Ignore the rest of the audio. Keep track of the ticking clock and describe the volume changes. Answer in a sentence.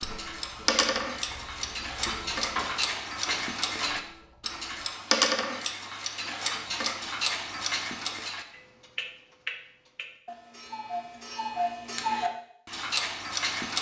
The volume of the ticking clock goes down, then up.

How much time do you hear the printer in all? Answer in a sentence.
The printer can be heard for 5 seconds in total.